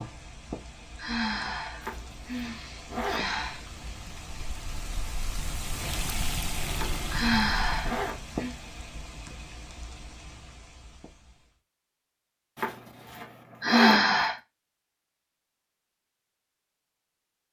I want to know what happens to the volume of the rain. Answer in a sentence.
The loudness of the rain goes up, then down.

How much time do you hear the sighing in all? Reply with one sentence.
You can hear the sighing for 5 seconds altogether.